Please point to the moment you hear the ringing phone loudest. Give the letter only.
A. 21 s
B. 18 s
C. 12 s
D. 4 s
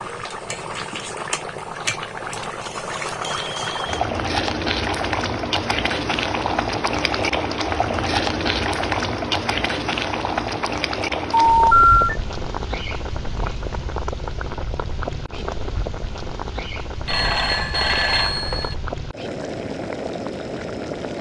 C.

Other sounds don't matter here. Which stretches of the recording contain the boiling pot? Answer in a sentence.
You can hear the boiling pot from 0.0 to 21.1 s.